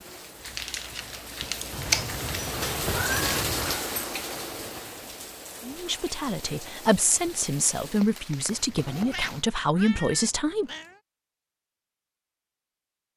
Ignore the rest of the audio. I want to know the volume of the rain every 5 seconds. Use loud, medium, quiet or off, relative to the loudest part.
loud, medium, off.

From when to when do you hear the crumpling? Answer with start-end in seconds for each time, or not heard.
0.4-2.2.